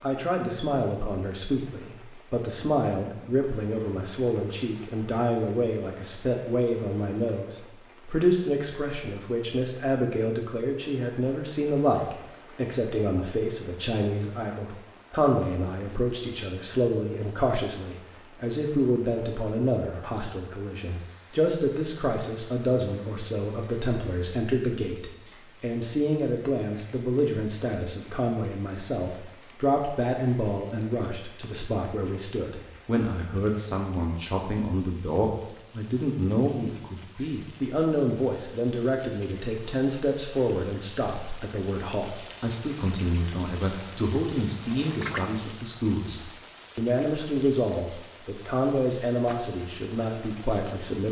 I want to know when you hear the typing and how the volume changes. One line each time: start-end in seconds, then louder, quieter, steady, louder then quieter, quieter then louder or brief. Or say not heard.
not heard.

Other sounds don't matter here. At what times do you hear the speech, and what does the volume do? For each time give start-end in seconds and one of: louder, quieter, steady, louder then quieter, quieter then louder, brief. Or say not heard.
0.0-51.0 steady.